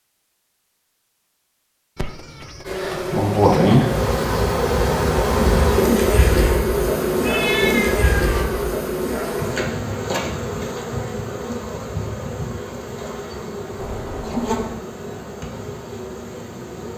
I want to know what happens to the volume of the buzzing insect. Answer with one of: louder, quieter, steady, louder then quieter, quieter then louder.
quieter.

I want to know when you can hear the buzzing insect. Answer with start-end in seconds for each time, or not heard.
2.6-16.9.